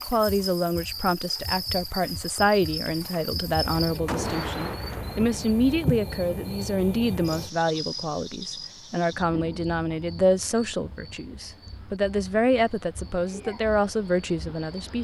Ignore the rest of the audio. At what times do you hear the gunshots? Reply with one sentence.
The gunshots can be heard from 4.0 to 5.6 s.